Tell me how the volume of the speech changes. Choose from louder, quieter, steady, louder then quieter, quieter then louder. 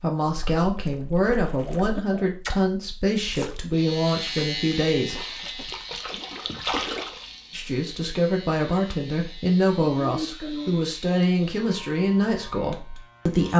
steady.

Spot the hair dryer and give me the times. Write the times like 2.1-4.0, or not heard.
not heard.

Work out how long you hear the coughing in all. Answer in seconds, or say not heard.
2 s.